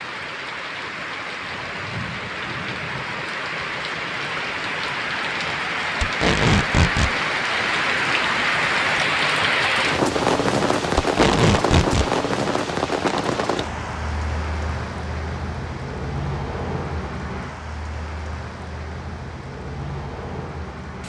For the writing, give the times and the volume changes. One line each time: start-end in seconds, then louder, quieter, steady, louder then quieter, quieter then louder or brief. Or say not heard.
not heard.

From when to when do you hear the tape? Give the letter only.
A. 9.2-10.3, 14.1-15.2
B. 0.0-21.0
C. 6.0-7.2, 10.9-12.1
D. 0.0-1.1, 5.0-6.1
C.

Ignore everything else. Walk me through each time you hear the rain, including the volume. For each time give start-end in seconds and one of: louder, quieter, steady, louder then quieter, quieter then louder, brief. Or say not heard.
0.0-21.0 louder then quieter.